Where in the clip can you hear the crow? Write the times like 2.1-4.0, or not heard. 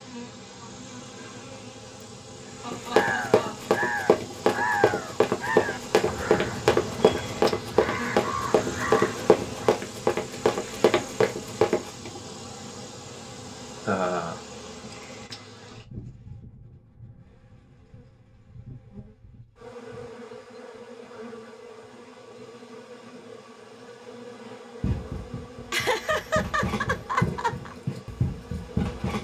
2.9-9.8.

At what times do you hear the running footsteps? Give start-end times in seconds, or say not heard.
2.7-11.9, 24.8-29.1.